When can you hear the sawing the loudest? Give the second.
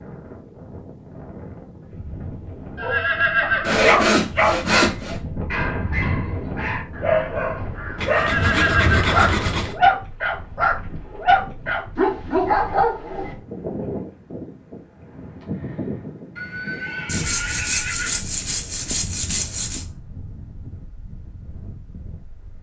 4 s.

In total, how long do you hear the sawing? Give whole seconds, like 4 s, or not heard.
6 s.